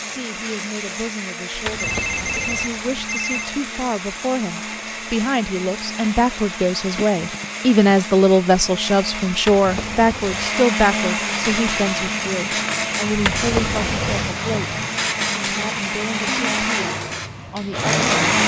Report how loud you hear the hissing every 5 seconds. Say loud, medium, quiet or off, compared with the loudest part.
off, off, loud, loud.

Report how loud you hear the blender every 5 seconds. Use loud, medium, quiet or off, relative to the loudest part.
medium, medium, loud, loud.